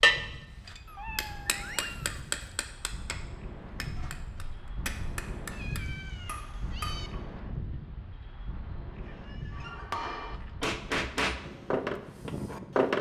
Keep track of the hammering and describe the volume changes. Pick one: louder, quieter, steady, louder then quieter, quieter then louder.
quieter then louder.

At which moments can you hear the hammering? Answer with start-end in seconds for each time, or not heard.
0.0-7.2, 9.5-12.9.